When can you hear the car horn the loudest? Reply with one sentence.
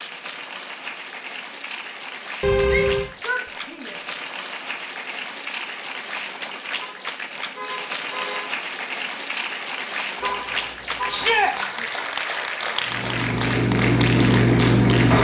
The loudest moment of the car horn is at 3 seconds.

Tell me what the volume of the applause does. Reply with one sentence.
The volume of the applause goes up.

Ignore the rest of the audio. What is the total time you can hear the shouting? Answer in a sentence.
The shouting can be heard for 2 seconds in total.